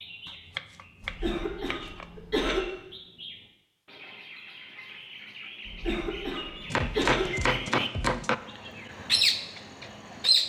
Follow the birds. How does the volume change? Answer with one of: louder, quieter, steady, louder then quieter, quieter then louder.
louder.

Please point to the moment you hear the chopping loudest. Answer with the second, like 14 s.
8 s.